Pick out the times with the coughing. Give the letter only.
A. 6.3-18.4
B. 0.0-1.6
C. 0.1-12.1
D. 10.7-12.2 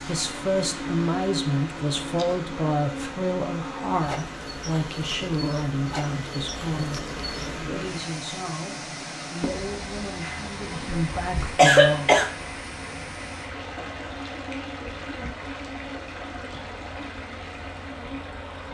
D.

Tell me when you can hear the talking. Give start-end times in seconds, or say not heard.
0.1-12.1.